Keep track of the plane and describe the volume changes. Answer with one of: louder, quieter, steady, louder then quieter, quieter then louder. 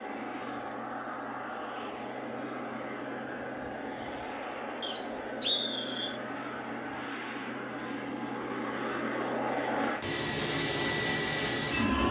louder.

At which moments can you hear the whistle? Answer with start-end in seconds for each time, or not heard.
4.8-6.2.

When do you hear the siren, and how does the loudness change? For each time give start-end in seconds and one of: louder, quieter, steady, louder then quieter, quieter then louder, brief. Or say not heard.
not heard.